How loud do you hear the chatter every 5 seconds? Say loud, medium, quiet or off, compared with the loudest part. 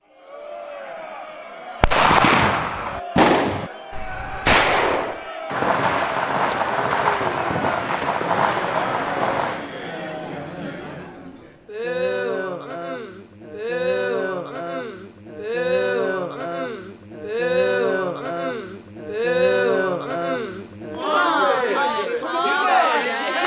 quiet, medium, medium, loud, loud.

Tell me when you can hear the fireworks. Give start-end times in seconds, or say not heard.
1.8-9.8.